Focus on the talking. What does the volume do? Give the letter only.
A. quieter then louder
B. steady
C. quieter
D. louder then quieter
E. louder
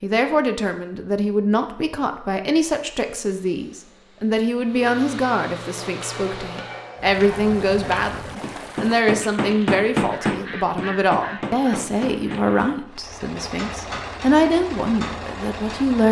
B.